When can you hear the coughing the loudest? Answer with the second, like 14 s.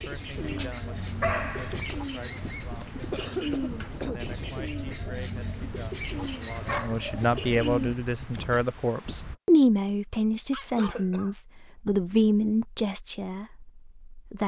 3 s.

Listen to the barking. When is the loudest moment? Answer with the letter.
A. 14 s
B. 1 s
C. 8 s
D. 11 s
B.